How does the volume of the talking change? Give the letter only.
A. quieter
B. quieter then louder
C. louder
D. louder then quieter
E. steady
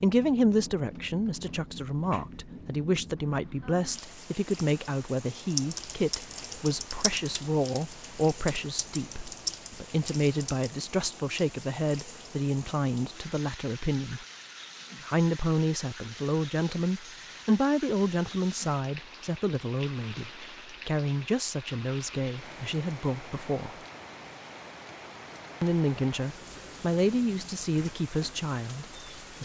E.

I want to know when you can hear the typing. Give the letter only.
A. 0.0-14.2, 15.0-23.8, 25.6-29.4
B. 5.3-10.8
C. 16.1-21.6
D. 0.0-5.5
B.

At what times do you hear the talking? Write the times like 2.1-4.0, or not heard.
0.0-14.2, 15.0-23.8, 25.6-29.4.